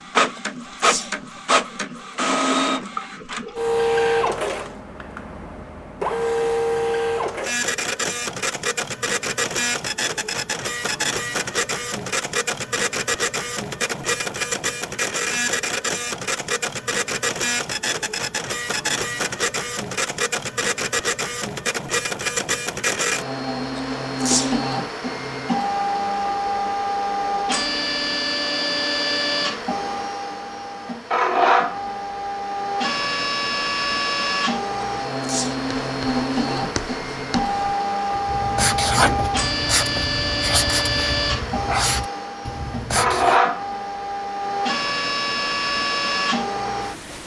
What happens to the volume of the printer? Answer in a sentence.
The loudness of the printer stays about the same.